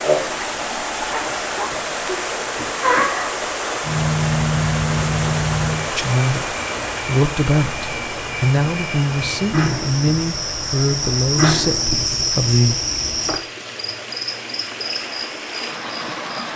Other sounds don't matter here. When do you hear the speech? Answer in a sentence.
The speech can be heard from 5.9 to 12.8 s.